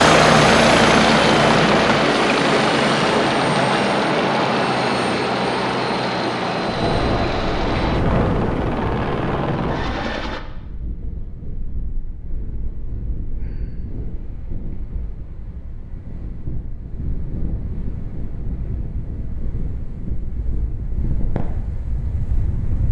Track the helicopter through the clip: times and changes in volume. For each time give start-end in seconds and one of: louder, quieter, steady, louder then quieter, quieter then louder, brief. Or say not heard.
0.0-10.4 quieter.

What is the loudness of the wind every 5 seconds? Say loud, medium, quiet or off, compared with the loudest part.
off, loud, quiet, medium, medium.